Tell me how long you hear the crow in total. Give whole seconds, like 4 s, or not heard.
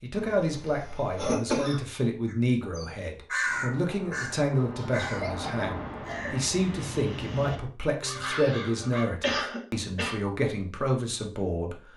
7 s.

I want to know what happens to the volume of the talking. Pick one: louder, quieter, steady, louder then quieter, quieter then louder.
steady.